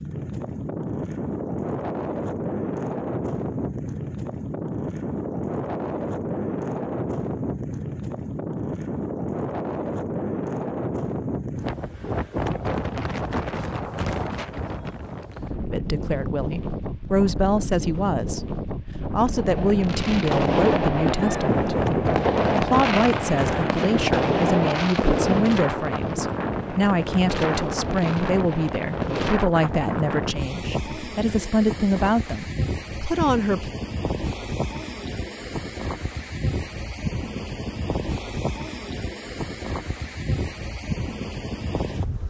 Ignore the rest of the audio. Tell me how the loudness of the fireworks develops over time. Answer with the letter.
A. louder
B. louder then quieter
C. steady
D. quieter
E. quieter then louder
D.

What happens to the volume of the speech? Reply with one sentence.
The loudness of the speech stays about the same.